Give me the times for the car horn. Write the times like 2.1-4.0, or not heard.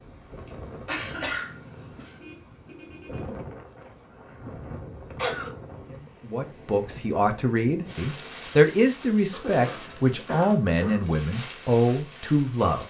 2.1-3.4.